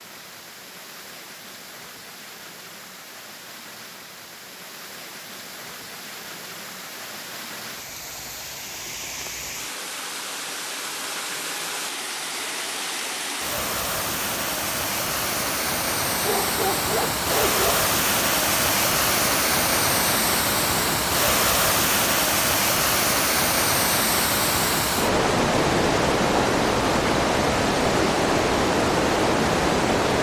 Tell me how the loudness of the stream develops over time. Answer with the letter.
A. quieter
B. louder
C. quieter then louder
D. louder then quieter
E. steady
B.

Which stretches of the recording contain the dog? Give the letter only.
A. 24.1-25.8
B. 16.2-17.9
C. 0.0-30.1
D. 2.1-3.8
B.